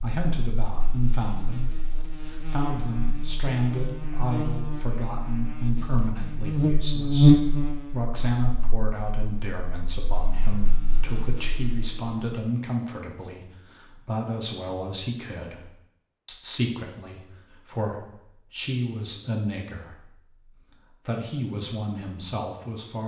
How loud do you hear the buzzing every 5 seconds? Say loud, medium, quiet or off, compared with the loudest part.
quiet, loud, quiet, off, off.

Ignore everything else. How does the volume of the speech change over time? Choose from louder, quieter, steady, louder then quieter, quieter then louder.
steady.